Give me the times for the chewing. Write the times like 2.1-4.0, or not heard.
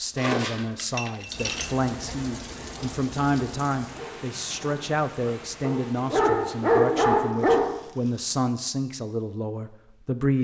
not heard.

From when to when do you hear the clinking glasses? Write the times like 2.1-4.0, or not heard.
0.1-1.7.